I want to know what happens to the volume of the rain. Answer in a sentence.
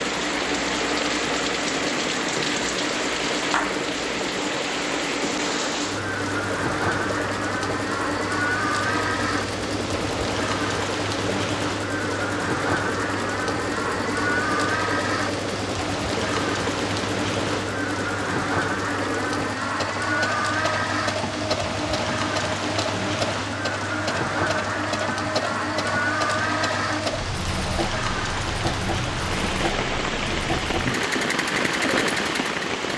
The volume of the rain stays about the same.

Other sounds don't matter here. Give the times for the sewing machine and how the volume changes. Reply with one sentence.
The sewing machine can be heard from 0.0 to 32.8 s, at a steady volume.